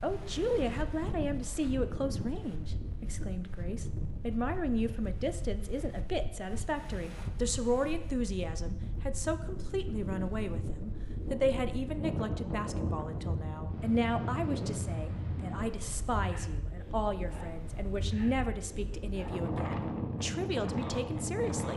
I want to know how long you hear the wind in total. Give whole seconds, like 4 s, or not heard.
22 s.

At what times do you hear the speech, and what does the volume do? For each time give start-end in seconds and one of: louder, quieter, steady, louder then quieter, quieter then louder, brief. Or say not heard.
0.0-21.7 steady.